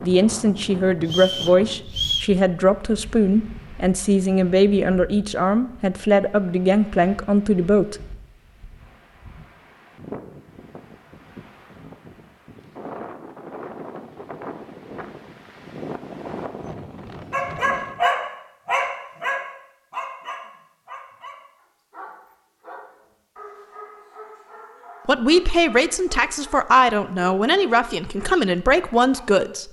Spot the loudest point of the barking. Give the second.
18 s.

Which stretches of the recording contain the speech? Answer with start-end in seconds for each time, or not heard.
0.0-8.0, 25.1-29.6.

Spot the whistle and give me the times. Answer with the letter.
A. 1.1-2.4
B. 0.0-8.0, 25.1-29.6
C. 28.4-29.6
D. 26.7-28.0
A.